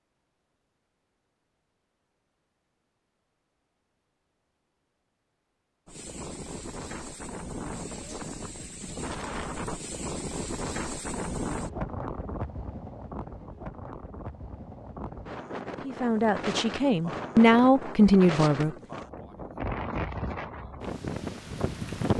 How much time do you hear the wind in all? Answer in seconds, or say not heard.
16 s.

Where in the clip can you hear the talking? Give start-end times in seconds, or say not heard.
15.8-18.7.